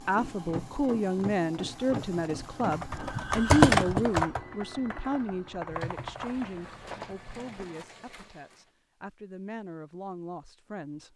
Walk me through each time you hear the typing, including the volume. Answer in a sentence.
You can hear the typing from 1.9 to 7.3 s, getting louder then quieter.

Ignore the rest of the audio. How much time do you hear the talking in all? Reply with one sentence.
The talking can be heard for 11 seconds in total.